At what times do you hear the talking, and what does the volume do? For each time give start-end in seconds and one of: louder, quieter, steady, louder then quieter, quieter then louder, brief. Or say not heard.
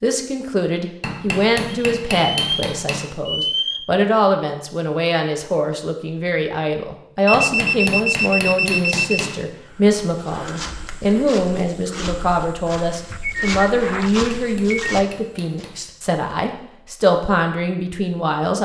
0.0-18.6 steady.